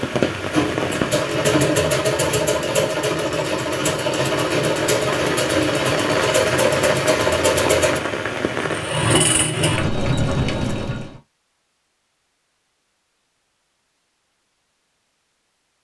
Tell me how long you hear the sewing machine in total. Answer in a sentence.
The sewing machine can be heard for 11 seconds in total.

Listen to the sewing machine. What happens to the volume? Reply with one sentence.
The loudness of the sewing machine stays about the same.